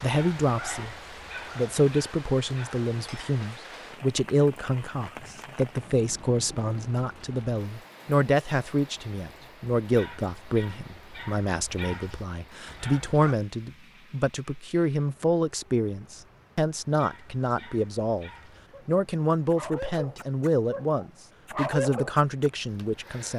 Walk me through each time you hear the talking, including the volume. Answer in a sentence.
The talking can be heard briefly from 0.0 to 0.9 s; and from 1.6 to 23.3 s, at a steady volume.